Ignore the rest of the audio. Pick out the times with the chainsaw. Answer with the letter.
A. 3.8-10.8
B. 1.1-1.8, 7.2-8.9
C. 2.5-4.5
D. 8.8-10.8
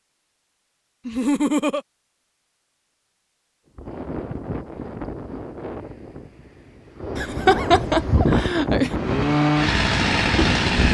D.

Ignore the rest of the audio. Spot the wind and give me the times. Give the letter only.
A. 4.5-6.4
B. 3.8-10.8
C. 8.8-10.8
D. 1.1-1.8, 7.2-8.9
B.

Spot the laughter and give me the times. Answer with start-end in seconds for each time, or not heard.
1.1-1.8, 7.2-8.9.